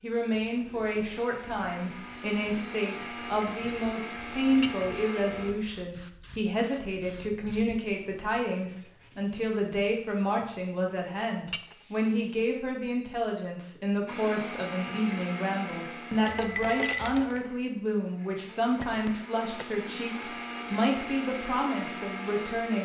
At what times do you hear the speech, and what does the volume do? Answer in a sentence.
The speech can be heard from 0.0 to 22.8 s, at a steady volume.